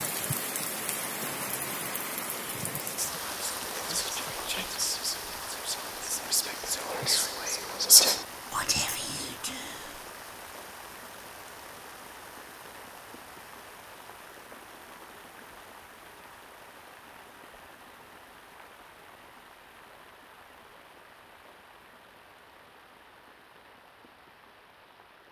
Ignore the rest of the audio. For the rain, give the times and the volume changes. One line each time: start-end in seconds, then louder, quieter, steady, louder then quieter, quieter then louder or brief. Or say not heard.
0.0-25.2 quieter.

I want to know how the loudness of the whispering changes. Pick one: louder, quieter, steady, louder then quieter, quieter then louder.
louder then quieter.